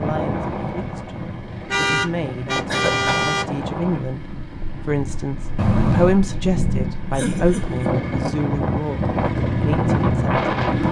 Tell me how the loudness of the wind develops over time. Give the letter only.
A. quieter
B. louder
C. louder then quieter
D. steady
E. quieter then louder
E.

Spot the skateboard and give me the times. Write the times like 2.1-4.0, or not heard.
not heard.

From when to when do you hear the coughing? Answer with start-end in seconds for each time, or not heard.
2.6-3.3, 7.1-7.8.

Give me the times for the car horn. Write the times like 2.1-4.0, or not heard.
1.7-3.5, 5.5-6.2.